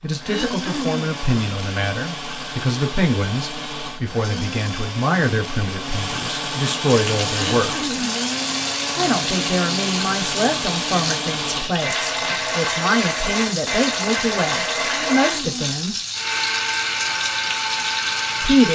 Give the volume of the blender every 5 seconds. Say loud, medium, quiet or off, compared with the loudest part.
medium, loud, loud, loud.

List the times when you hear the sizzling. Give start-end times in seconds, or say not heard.
6.8-18.7.